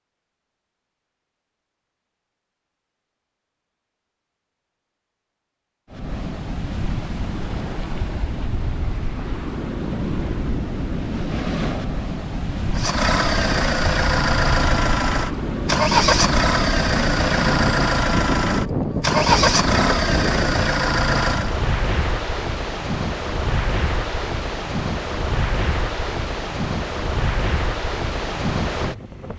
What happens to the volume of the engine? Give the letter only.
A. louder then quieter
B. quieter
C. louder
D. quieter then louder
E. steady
E.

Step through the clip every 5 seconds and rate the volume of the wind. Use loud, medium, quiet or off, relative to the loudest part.
off, medium, loud, loud, loud, loud.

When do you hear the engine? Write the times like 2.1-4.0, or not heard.
12.8-21.6.